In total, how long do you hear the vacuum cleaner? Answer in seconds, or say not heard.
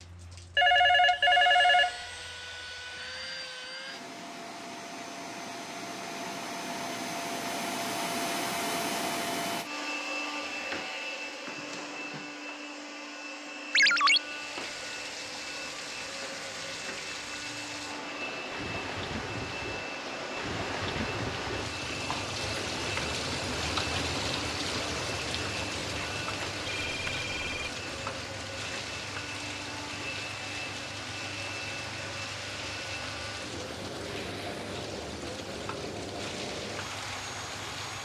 38 s.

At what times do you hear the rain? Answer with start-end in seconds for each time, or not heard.
14.1-38.0.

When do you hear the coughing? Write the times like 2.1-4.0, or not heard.
not heard.